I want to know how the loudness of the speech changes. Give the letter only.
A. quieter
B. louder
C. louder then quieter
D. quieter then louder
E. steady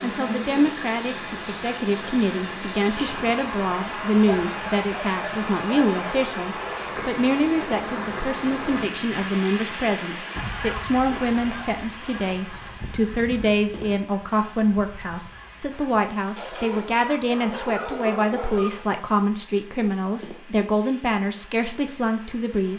E.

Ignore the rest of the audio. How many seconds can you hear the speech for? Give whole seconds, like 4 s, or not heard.
23 s.